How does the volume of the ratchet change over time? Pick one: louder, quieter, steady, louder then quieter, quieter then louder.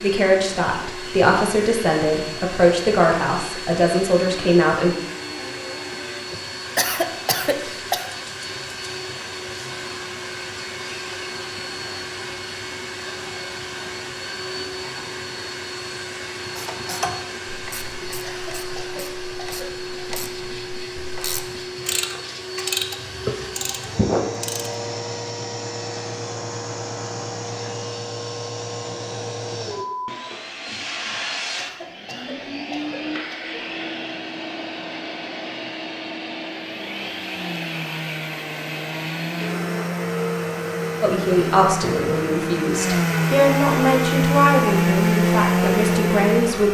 quieter then louder.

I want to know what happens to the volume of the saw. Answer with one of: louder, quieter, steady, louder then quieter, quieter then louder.
louder.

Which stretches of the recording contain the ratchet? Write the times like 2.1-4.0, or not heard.
16.6-24.7.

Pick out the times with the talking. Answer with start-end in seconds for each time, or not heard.
0.0-5.0, 41.0-46.6.